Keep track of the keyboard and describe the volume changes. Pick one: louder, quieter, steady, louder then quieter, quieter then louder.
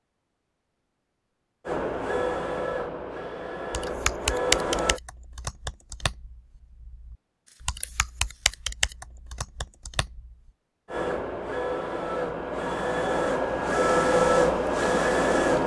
quieter then louder.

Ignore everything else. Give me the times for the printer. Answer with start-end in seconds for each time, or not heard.
1.6-5.0, 10.8-15.6.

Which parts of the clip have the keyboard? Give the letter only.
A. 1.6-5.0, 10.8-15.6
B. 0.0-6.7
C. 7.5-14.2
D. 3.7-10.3
D.